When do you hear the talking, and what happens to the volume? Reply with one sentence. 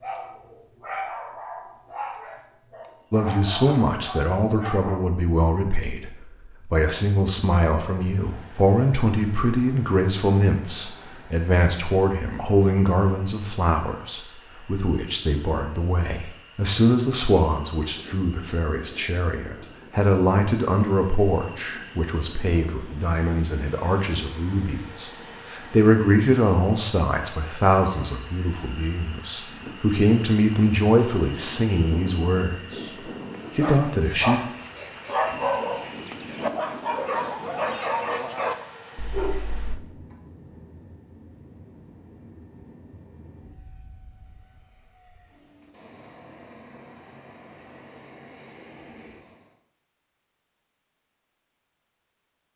The talking can be heard from 3.1 to 32.9 s, at a steady volume; and briefly from 33.5 to 34.4 s.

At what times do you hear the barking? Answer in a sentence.
The barking can be heard from 0.0 to 5.0 s and from 33.3 to 39.8 s.